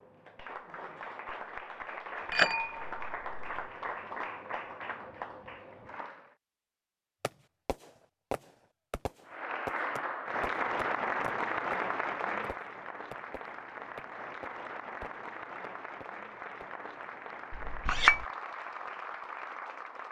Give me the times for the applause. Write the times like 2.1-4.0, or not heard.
0.0-6.3, 9.2-20.0.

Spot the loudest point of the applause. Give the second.
11 s.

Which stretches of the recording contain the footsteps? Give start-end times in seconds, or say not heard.
not heard.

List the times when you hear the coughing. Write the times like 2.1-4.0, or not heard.
not heard.